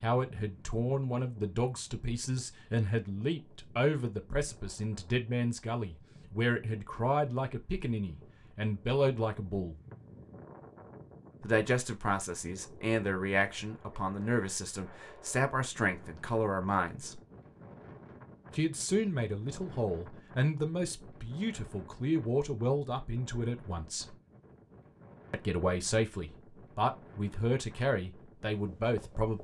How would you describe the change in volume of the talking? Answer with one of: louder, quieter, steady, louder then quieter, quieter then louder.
steady.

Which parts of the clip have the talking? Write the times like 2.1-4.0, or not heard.
0.0-9.8, 11.4-17.2, 18.6-24.1, 25.3-29.3.